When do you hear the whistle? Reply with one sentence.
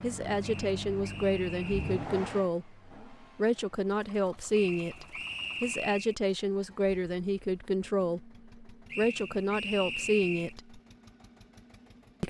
The whistle can be heard from 0.4 to 2.0 s, from 4.5 to 6.2 s and from 8.9 to 10.6 s.